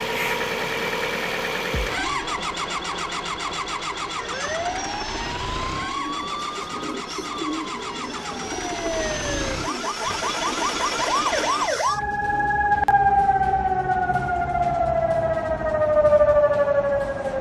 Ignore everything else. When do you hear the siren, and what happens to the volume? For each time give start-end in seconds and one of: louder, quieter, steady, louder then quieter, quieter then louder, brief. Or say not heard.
4.2-17.3 louder.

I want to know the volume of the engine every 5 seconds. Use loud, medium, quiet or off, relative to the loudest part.
loud, medium, loud, off.